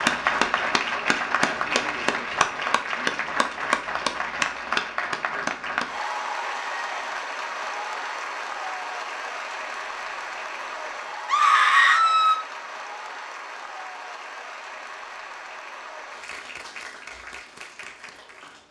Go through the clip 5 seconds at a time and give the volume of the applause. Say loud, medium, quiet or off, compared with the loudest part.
loud, medium, medium, quiet.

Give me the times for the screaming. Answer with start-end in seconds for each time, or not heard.
11.2-12.4.